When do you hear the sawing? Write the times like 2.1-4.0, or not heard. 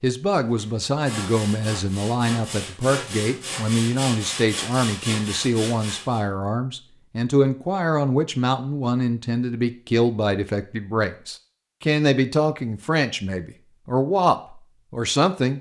0.3-6.2.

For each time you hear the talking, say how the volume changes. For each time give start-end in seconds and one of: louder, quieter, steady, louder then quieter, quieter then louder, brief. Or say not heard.
0.0-15.5 steady.